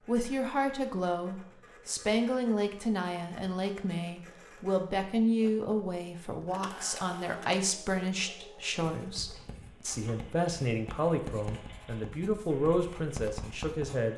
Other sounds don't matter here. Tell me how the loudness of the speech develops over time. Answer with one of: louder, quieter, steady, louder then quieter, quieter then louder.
steady.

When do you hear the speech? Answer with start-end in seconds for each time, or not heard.
0.1-14.1.